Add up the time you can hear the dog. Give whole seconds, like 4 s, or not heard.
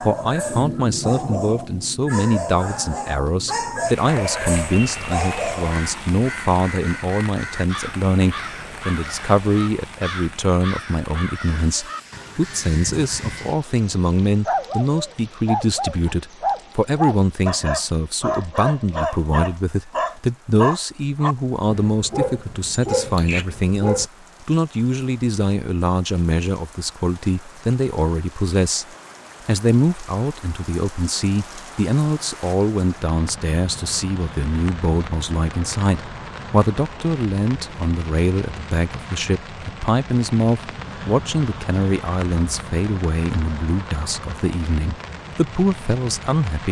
15 s.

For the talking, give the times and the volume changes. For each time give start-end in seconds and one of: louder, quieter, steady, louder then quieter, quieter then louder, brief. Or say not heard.
0.0-28.9 steady
29.4-46.6 steady.